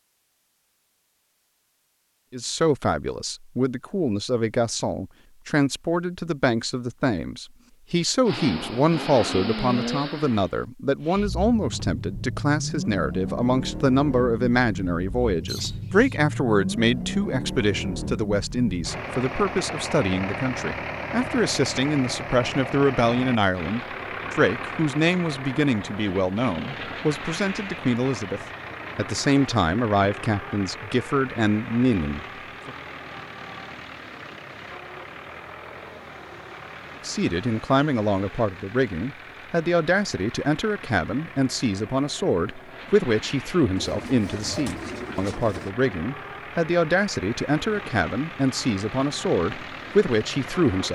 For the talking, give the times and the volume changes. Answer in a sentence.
The talking can be heard from 2.3 to 32.8 s, at a steady volume; and from 37.0 to 50.9 s, at a steady volume.